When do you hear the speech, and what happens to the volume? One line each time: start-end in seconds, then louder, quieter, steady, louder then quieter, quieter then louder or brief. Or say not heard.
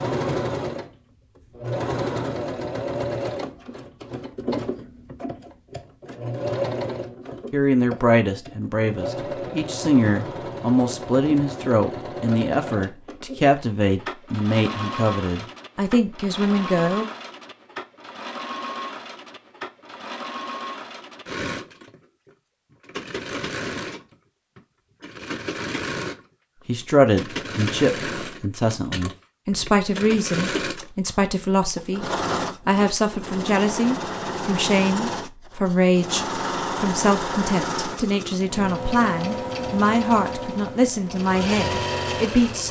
7.5-17.1 steady
26.6-42.6 steady.